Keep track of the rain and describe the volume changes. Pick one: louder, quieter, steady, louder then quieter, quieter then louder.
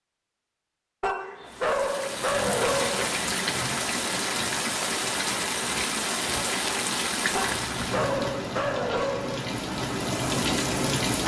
steady.